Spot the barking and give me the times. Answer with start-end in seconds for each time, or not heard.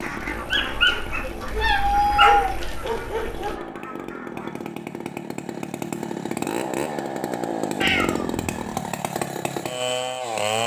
0.0-3.6.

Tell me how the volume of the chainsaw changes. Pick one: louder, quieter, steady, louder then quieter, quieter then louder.
louder.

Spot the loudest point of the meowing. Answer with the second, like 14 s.
2 s.